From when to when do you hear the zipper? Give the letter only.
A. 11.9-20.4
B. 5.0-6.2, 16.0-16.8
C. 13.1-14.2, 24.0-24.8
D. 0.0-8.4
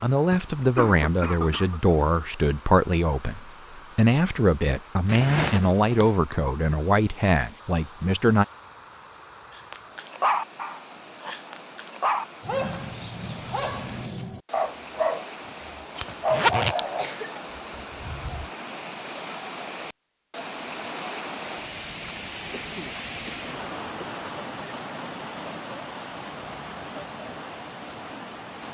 B.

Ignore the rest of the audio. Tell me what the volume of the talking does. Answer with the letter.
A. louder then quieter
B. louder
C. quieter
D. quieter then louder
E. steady
E.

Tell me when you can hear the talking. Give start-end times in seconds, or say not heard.
0.0-8.4.